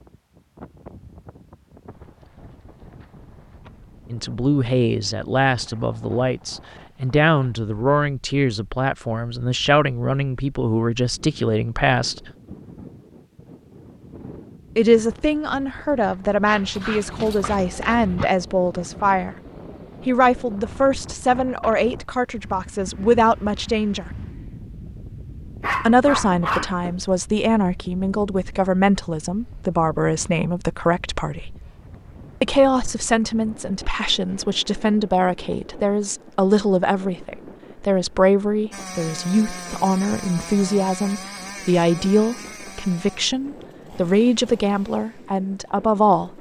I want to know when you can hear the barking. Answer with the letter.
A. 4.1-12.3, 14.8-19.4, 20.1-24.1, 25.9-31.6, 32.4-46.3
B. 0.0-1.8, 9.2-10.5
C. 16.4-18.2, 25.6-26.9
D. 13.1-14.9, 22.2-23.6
C.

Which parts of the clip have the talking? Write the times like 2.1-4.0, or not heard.
4.1-12.3, 14.8-19.4, 20.1-24.1, 25.9-31.6, 32.4-46.3.